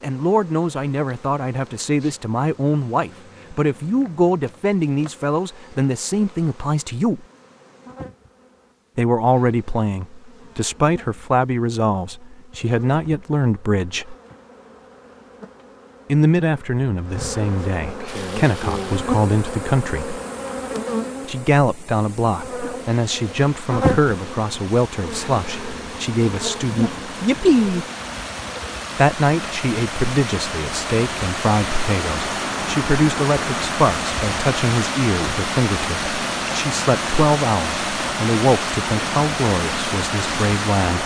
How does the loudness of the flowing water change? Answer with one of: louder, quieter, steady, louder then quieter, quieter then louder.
louder.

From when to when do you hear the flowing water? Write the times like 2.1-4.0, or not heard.
18.1-41.0.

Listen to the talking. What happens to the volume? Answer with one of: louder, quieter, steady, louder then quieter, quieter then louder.
steady.